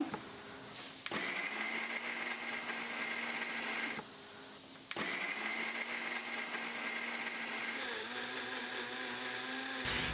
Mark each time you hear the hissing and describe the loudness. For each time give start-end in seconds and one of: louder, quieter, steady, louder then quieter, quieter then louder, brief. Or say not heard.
0.0-10.0 steady.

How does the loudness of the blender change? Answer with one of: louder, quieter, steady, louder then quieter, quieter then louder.
steady.